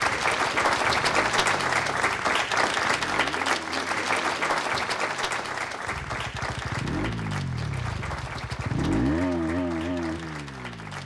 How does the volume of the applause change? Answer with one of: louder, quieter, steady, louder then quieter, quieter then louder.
quieter.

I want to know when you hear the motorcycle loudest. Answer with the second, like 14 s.
9 s.